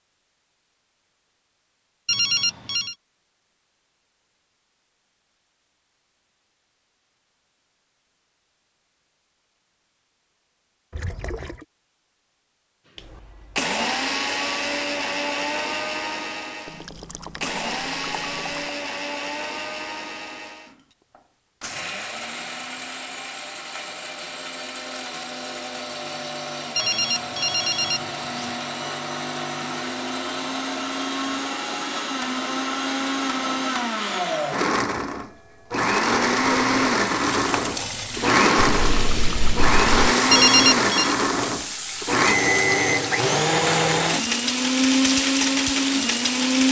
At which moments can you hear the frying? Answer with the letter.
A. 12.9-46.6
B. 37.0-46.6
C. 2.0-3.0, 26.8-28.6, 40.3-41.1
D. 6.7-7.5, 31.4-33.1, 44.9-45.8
B.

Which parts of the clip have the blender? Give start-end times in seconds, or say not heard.
12.9-46.6.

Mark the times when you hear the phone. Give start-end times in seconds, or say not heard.
2.0-3.0, 26.8-28.6, 40.3-41.1.